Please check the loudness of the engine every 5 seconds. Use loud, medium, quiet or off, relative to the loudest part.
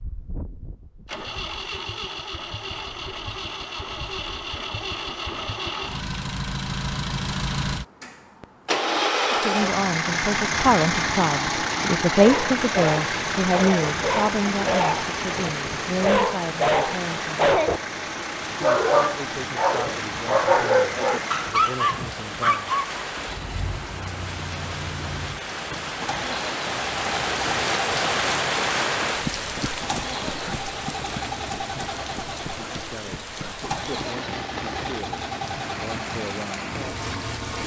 medium, loud, loud, medium, medium, medium, medium, medium.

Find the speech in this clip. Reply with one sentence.
You can hear the speech from 9.3 to 17.6 s, from 18.6 to 22.8 s and from 32.7 to 36.5 s.